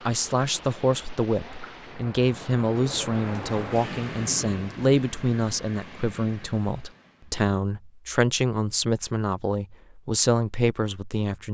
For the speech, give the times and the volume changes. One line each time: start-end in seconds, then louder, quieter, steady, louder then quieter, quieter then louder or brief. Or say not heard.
0.1-11.5 steady.